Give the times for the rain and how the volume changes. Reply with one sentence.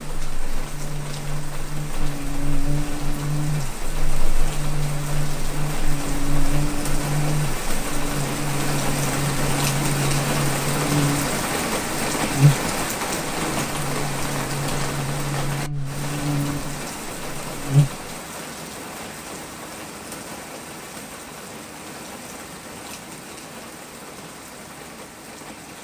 The rain can be heard from 0.0 to 25.7 s, getting louder then quieter.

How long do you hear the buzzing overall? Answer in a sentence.
The buzzing can be heard for 18 seconds in total.